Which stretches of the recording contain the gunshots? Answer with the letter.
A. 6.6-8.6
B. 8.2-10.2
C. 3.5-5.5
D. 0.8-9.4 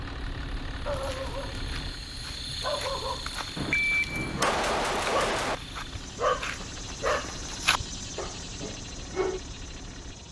C.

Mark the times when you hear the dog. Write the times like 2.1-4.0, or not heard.
0.8-9.4.